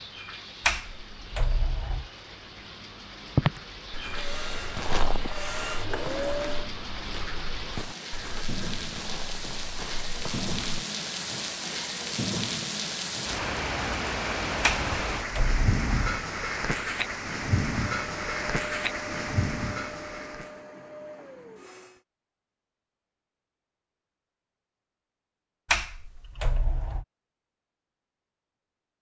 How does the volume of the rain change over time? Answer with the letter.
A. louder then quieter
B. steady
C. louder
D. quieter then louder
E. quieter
C.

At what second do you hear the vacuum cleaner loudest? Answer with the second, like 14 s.
6 s.